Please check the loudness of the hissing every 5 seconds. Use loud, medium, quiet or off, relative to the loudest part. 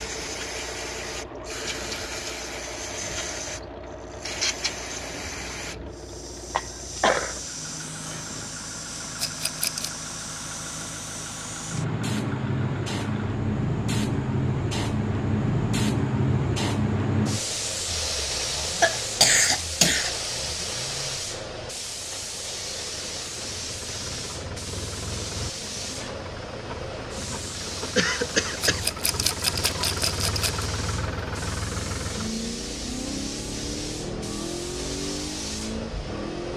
medium, medium, loud, loud, medium, medium, medium, medium.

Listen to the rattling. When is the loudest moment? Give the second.
29 s.